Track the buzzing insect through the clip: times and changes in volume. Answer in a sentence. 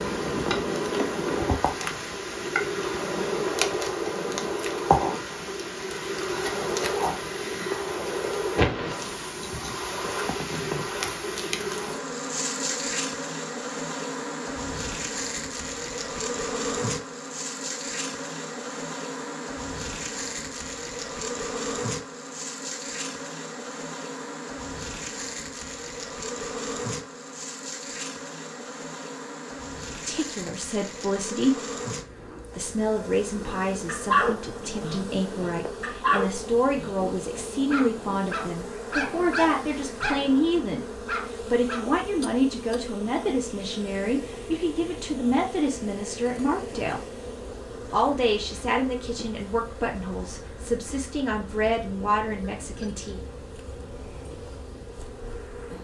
You can hear the buzzing insect from 0.0 to 55.7 s, getting quieter.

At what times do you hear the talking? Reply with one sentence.
You can hear the talking from 29.9 to 31.6 s, from 32.5 to 47.0 s and from 47.9 to 53.2 s.